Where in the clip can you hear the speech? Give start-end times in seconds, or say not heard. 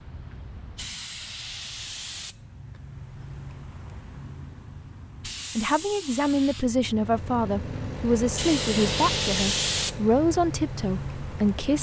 5.5-11.7.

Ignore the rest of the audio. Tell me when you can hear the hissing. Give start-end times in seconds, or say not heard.
0.0-11.7.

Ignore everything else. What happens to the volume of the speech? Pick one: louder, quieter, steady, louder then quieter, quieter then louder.
steady.